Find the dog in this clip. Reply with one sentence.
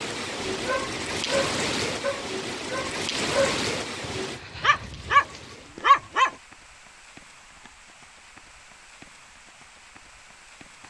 The dog can be heard from 0.5 to 6.3 s.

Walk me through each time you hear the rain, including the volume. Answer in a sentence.
You can hear the rain from 0.0 to 10.8 s, getting quieter.